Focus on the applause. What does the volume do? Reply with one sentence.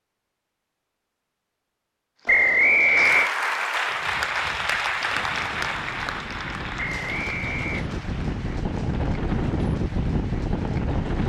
The loudness of the applause goes down.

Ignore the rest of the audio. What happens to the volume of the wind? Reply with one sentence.
The loudness of the wind goes up.